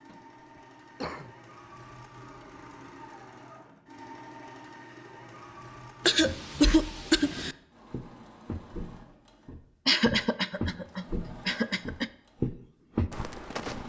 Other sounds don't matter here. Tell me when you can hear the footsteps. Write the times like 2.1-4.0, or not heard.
6.2-13.8.